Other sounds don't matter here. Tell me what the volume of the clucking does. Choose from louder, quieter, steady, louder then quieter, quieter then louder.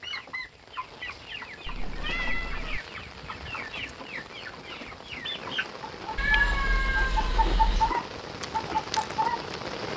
louder.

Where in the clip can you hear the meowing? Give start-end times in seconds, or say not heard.
1.6-2.8, 6.2-8.0.